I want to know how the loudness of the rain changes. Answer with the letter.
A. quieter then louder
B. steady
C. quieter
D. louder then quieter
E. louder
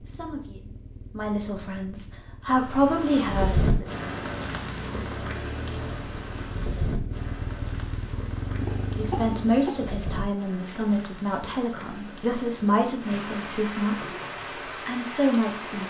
A.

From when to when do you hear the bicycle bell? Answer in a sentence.
The bicycle bell can't be heard in this clip.